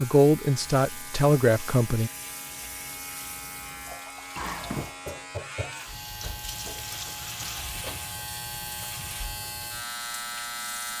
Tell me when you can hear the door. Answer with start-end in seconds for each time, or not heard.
4.3-5.0.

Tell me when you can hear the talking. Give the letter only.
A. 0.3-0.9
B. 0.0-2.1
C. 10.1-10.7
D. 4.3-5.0
B.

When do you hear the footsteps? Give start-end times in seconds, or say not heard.
not heard.